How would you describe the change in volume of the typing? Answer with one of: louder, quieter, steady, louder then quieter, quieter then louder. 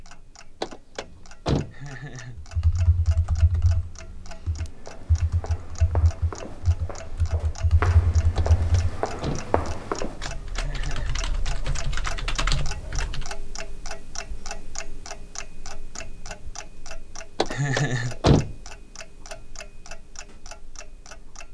louder.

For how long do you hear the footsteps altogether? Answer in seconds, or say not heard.
6 s.